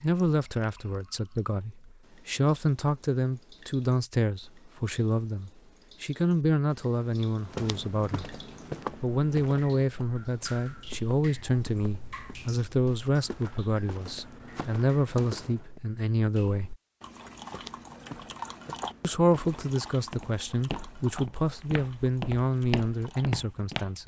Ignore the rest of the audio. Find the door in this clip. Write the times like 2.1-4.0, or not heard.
not heard.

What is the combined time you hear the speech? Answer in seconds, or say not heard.
21 s.